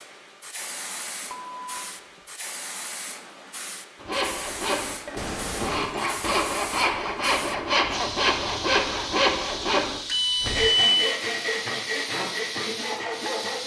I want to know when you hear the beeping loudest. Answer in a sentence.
The loudest moment of the beeping is at 11 seconds.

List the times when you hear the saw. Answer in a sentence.
The saw can be heard from 4.0 to 13.6 s.